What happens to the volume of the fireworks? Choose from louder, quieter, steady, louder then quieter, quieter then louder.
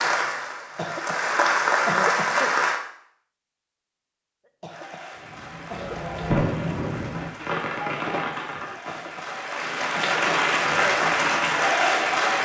quieter then louder.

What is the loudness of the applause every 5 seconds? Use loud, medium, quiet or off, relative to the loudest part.
loud, quiet, loud.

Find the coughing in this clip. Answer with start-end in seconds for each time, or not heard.
0.6-2.6, 4.5-6.0, 8.7-10.2.